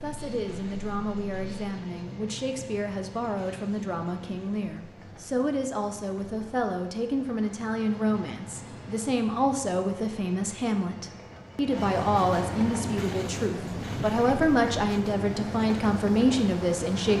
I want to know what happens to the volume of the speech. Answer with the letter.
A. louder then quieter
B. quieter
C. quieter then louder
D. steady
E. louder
E.